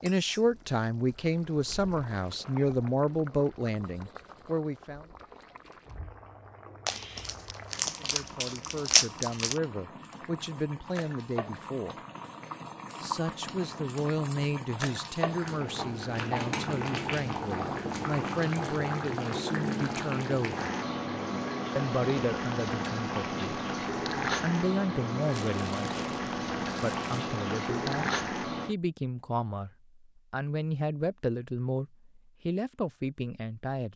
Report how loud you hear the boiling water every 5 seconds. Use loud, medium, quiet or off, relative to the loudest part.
quiet, quiet, medium, loud, loud, loud, off.